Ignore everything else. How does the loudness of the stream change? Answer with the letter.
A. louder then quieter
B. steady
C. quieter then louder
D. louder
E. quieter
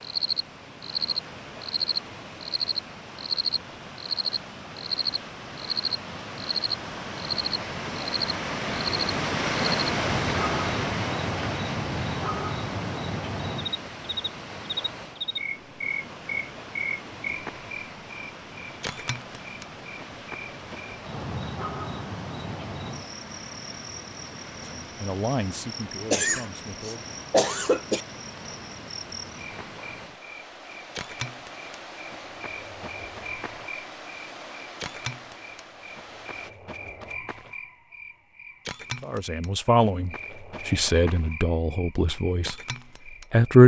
A.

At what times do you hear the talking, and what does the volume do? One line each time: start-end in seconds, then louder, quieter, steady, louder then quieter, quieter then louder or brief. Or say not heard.
24.8-27.1 brief
39.0-43.6 quieter.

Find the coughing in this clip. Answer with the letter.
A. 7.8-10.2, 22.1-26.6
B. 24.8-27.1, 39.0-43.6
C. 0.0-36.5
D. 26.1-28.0
D.